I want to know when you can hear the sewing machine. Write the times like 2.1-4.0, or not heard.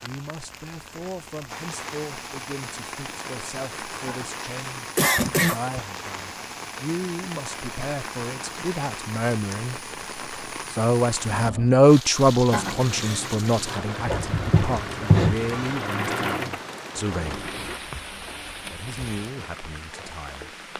11.3-17.8.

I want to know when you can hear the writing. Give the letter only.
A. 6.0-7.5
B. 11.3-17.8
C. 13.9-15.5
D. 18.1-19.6
C.